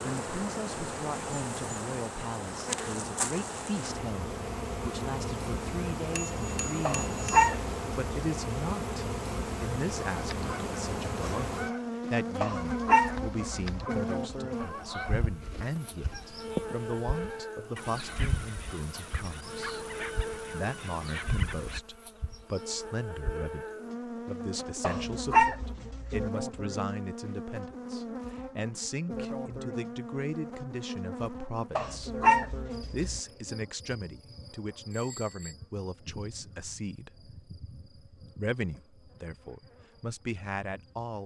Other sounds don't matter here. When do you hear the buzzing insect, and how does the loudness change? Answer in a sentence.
You can hear the buzzing insect from 0.0 to 41.2 s, getting quieter.